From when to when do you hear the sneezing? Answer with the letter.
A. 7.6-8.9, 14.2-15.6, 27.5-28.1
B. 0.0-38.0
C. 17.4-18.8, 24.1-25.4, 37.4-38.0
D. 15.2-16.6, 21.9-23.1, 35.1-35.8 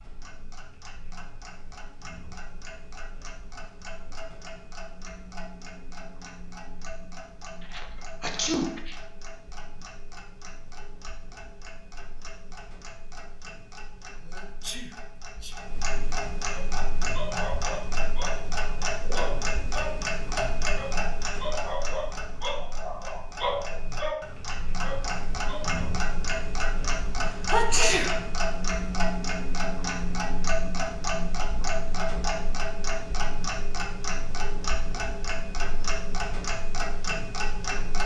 A.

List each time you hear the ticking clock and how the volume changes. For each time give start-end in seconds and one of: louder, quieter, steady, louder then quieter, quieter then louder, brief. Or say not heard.
0.0-38.0 louder.